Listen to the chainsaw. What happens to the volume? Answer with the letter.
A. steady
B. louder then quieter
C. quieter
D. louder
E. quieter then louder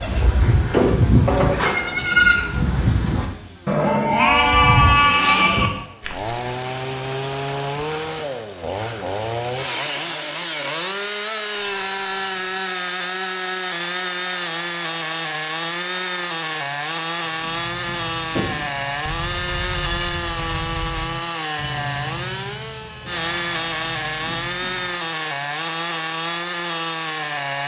A.